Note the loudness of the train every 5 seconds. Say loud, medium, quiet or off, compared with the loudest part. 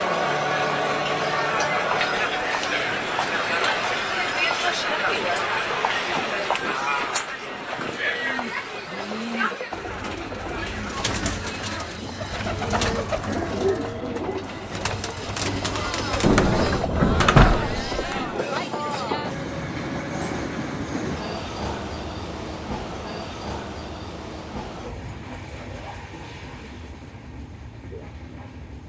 medium, medium, medium, loud, loud, medium.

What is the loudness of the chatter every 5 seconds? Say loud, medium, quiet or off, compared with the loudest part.
loud, loud, quiet, medium, off, off.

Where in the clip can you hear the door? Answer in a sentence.
The door can be heard from 16.2 to 18.1 s.